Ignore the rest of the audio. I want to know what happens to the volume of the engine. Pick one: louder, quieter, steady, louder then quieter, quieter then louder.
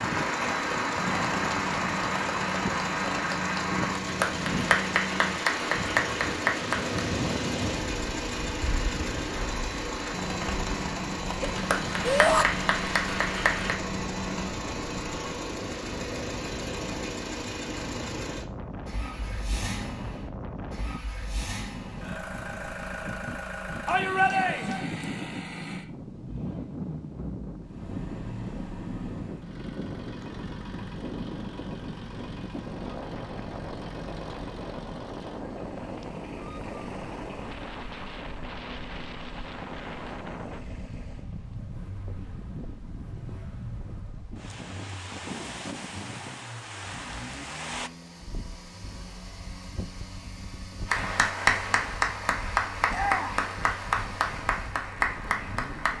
quieter.